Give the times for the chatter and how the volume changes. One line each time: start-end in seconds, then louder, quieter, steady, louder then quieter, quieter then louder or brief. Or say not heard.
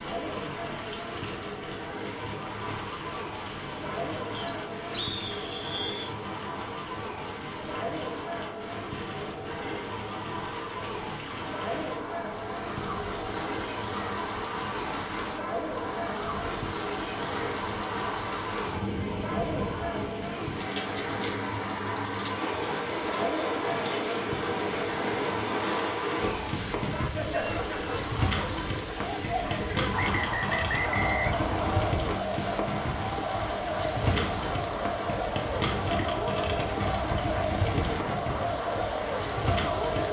0.0-40.0 louder.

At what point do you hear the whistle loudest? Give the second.
31 s.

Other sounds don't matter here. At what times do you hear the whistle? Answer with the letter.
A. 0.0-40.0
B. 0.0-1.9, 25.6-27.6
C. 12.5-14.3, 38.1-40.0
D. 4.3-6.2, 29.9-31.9
D.